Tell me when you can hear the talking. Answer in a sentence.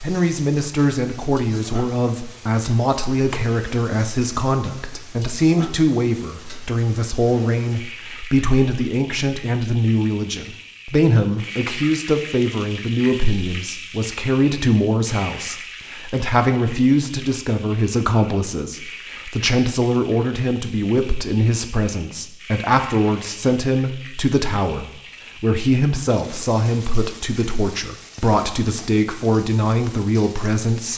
You can hear the talking from 0.0 to 30.9 s.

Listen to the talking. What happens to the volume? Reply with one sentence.
The loudness of the talking stays about the same.